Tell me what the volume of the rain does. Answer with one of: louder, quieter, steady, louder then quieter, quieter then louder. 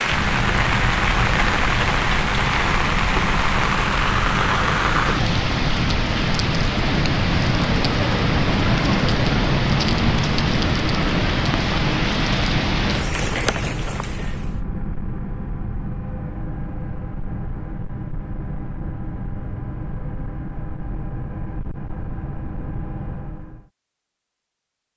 steady.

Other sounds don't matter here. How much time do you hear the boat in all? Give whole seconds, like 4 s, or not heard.
24 s.